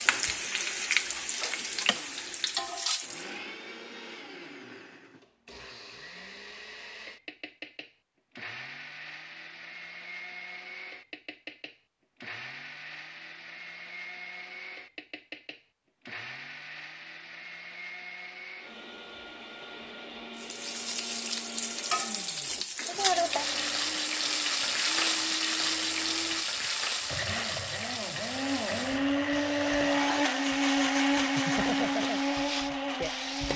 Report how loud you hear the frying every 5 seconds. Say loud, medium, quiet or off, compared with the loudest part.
loud, off, off, off, loud, loud, medium.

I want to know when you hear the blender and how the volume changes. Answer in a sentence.
The blender can be heard from 0.0 to 33.5 s, getting louder.